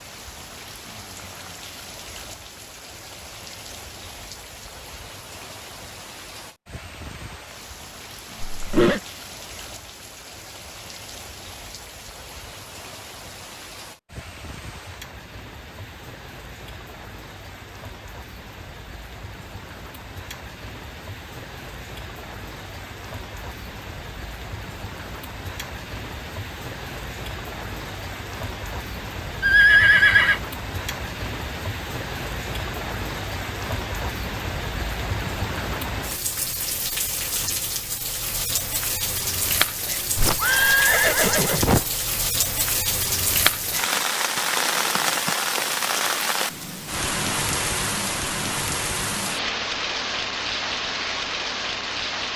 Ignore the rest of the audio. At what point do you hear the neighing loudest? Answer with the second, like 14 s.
30 s.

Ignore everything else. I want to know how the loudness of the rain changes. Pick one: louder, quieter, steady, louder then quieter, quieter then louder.
louder.